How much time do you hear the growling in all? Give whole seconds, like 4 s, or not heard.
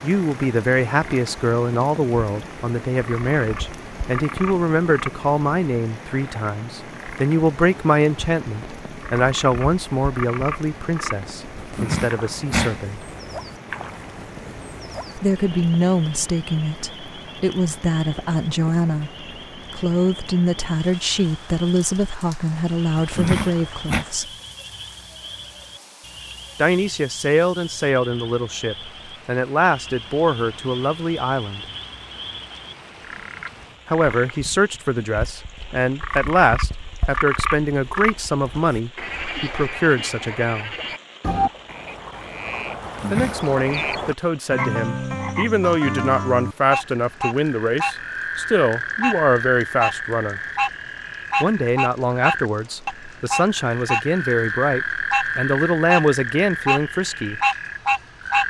3 s.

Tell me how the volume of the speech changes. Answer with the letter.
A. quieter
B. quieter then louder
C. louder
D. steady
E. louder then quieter
D.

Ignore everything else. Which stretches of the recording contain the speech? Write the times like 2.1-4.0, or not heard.
0.0-13.0, 15.2-24.2, 26.6-31.6, 33.9-40.7, 43.1-50.4, 51.4-57.4.